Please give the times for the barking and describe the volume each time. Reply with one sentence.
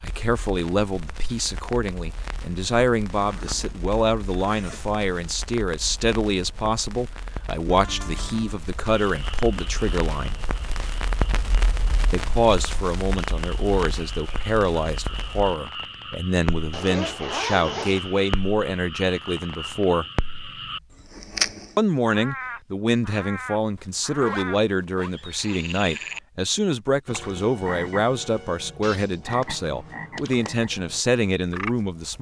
The barking can't be heard in this clip.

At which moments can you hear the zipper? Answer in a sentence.
The zipper can be heard from 3.1 to 5.0 s, from 16.7 to 18.2 s and from 23.8 to 25.1 s.